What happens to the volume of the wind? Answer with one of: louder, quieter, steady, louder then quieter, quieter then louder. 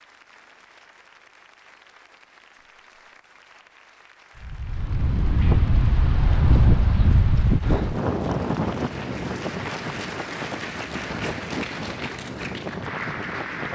quieter.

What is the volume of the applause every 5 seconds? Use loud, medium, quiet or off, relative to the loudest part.
quiet, medium, loud.